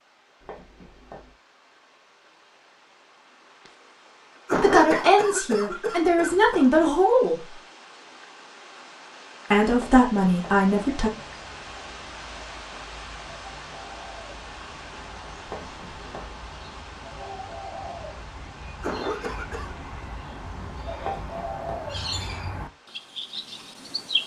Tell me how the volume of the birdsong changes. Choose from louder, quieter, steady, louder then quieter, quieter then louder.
louder.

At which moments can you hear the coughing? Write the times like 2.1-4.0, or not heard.
4.5-6.7, 18.8-19.8.